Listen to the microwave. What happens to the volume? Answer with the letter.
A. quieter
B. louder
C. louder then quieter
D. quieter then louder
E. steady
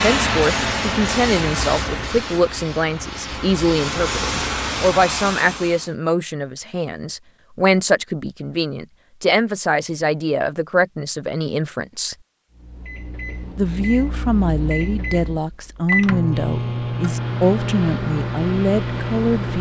B.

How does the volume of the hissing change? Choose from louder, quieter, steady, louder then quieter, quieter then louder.
quieter then louder.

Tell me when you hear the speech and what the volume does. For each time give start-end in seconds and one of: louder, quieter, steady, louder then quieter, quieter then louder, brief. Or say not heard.
0.0-12.2 steady
13.6-19.5 steady.